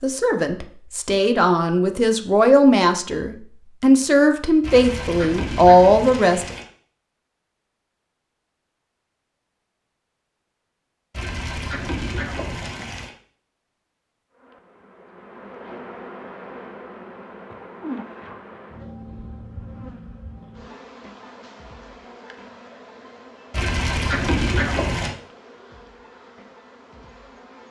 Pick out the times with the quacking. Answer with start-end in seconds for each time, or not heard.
4.6-6.7, 11.1-13.1, 23.5-25.1.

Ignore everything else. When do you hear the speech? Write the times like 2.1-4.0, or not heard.
0.0-6.5.